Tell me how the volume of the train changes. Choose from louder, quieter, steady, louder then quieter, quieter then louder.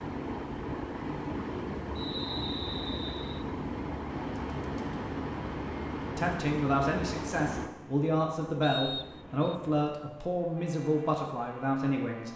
quieter.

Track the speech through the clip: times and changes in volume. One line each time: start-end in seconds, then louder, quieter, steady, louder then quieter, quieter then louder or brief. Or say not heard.
6.1-12.3 steady.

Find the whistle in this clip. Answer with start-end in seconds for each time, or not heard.
1.9-3.5, 8.6-9.6.